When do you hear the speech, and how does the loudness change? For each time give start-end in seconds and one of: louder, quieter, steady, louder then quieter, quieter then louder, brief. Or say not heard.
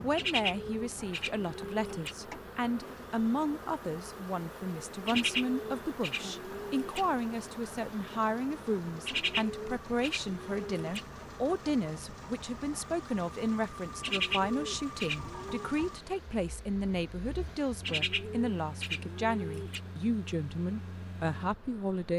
0.0-22.1 steady.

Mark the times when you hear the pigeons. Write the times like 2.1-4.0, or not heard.
0.1-2.1, 5.0-7.0, 9.1-11.1, 14.0-15.8, 17.8-19.8.